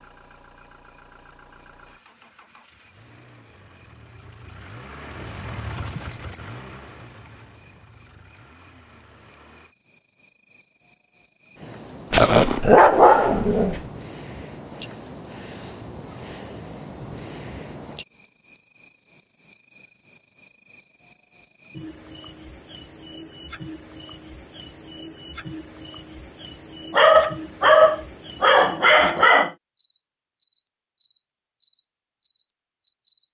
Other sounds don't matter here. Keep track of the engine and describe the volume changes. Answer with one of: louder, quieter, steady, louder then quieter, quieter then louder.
louder then quieter.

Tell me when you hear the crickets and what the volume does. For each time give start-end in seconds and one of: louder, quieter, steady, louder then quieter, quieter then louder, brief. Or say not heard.
0.0-33.2 louder.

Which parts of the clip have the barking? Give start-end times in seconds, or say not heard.
12.1-13.8, 26.9-29.5.